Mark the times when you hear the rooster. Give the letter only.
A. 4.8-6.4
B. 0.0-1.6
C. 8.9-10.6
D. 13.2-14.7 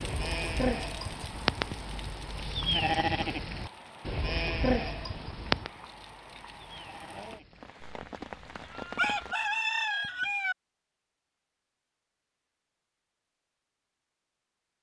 C.